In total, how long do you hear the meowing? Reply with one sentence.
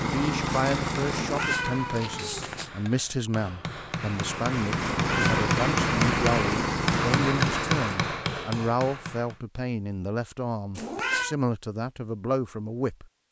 You can hear the meowing for 3 seconds altogether.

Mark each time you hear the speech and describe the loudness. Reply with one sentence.
You can hear the speech from 0.0 to 13.2 s, at a steady volume.